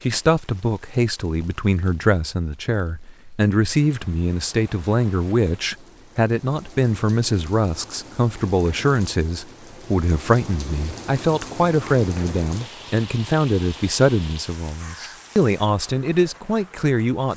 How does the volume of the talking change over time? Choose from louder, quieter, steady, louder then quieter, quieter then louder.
steady.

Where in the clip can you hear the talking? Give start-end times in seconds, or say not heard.
0.0-17.3.